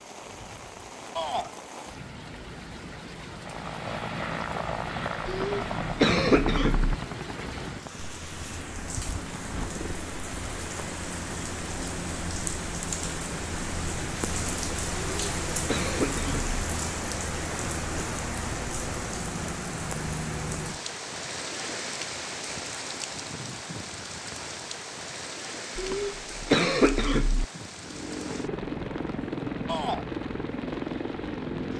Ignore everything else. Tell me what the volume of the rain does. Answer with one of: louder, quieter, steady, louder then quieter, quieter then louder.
louder then quieter.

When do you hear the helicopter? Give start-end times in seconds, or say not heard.
3.4-10.1, 27.8-31.7.